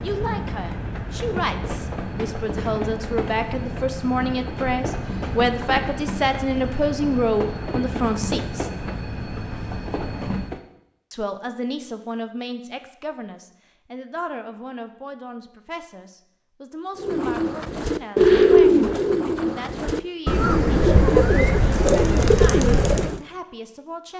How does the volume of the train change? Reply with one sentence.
The loudness of the train stays about the same.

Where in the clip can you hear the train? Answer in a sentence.
You can hear the train from 0.0 to 10.6 s.